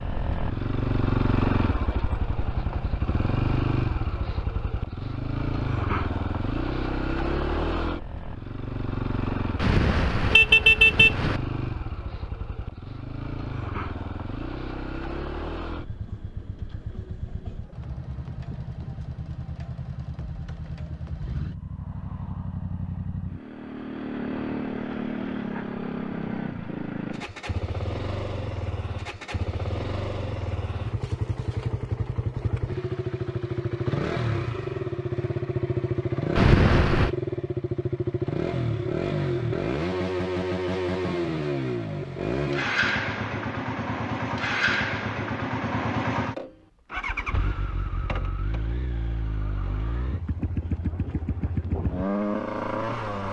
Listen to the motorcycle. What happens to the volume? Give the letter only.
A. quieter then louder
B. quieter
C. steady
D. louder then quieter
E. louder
A.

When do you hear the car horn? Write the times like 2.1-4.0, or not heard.
9.6-11.4, 36.4-37.1.